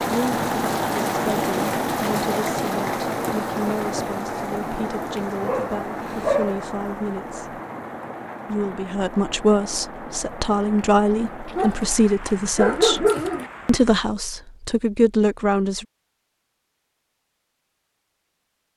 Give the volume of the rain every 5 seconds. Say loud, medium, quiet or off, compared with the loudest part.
loud, medium, quiet, off.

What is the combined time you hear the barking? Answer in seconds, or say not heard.
3 s.